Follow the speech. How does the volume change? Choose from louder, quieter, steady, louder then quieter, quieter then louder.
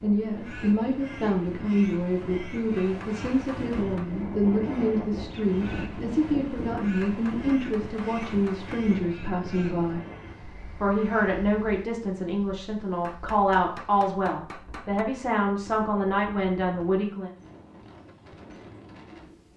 steady.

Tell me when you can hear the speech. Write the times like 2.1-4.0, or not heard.
0.0-10.1, 10.8-17.3.